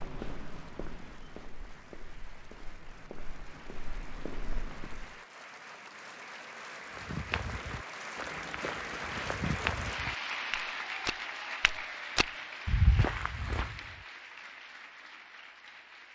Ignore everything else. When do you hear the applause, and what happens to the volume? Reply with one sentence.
The applause can be heard from 0.0 to 16.0 s, getting louder then quieter.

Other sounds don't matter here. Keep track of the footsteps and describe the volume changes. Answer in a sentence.
The loudness of the footsteps goes down, then up.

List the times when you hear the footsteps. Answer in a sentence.
The footsteps can be heard from 0.0 to 5.2 s and from 6.9 to 13.8 s.